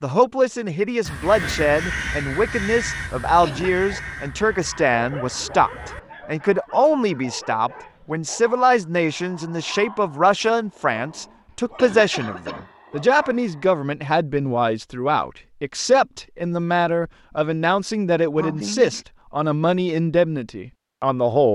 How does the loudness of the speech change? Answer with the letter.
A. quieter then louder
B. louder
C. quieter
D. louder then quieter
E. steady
E.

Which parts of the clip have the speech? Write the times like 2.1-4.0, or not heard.
0.0-21.5.